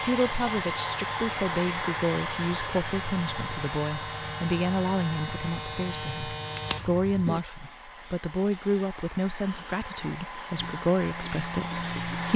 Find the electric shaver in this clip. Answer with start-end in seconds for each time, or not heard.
0.0-7.5, 10.6-12.3.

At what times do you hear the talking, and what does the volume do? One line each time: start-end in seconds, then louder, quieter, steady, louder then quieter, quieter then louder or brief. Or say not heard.
0.0-12.3 steady.